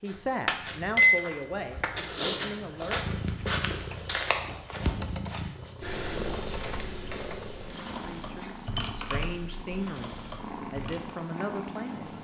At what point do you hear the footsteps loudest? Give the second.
2 s.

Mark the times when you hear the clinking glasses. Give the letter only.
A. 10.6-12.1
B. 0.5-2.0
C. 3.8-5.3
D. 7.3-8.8
B.